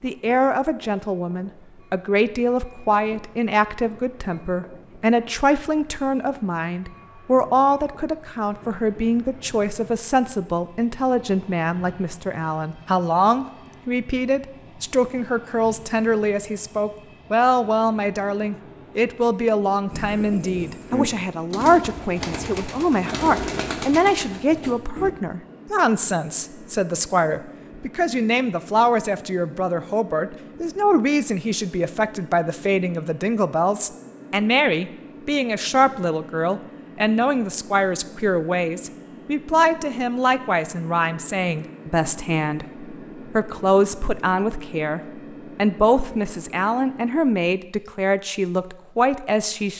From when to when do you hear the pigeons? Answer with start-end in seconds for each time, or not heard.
19.9-25.1.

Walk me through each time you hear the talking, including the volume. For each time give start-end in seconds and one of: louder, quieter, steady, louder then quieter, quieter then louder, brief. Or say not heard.
0.0-49.7 steady.